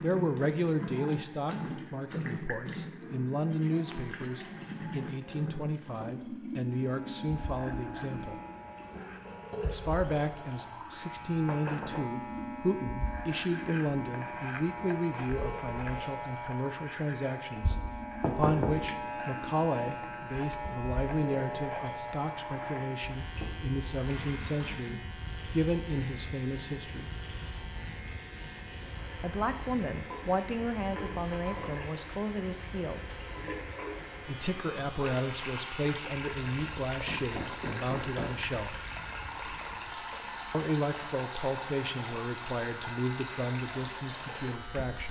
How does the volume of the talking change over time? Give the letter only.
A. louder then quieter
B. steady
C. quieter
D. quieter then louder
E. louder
B.